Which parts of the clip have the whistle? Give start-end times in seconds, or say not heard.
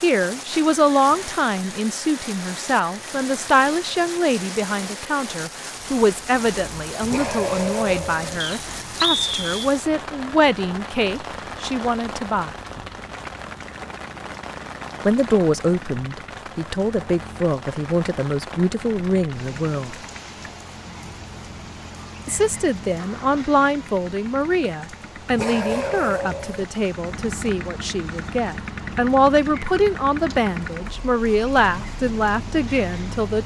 8.4-9.7.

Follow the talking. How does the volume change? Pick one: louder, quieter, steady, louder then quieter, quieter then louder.
steady.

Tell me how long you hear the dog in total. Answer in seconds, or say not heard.
3 s.